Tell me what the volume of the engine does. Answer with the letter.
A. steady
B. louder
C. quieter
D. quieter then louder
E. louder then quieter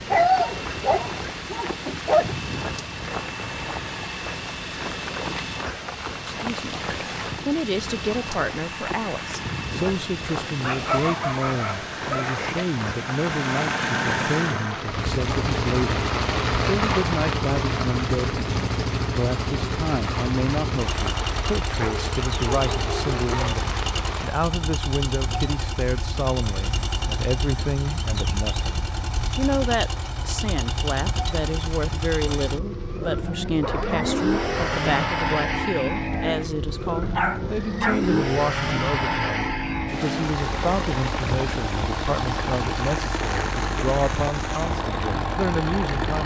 B.